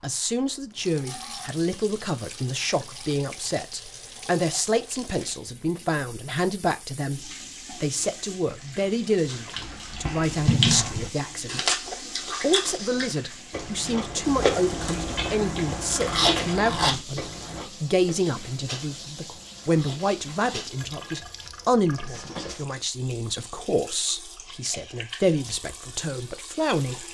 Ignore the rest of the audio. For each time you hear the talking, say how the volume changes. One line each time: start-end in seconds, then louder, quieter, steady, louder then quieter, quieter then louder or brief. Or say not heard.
0.0-27.0 steady.